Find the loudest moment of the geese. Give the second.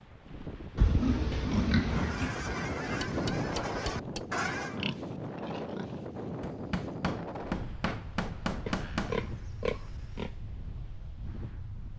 4 s.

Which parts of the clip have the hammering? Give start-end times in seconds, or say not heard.
3.0-4.3, 6.4-9.2.